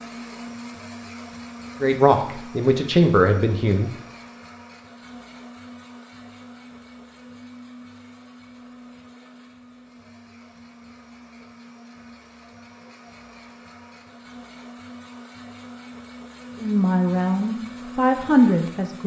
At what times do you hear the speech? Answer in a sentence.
The speech can be heard from 1.8 to 3.9 s and from 16.6 to 19.0 s.